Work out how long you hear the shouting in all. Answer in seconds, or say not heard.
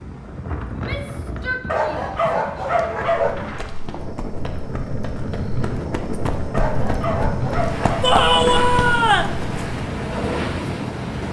3 s.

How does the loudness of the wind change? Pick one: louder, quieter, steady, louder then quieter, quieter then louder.
louder.